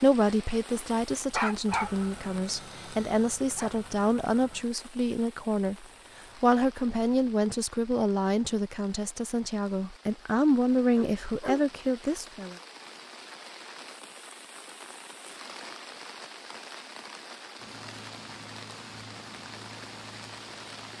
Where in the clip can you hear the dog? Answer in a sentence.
You can hear the dog from 0.9 to 1.9 s, from 2.5 to 3.7 s and from 10.9 to 11.7 s.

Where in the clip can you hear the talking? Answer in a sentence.
The talking can be heard from 0.0 to 12.6 s.